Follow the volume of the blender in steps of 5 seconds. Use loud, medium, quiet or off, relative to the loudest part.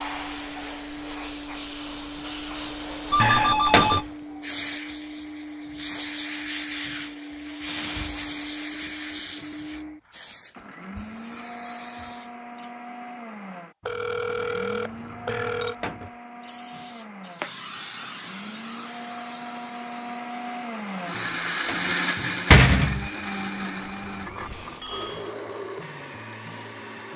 medium, medium, medium, medium, loud, medium.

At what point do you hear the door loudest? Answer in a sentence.
The volume of the door peaks at 23 seconds.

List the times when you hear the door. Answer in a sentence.
The door can be heard from 3.2 to 4.0 s, from 15.2 to 16.1 s and from 21.1 to 23.1 s.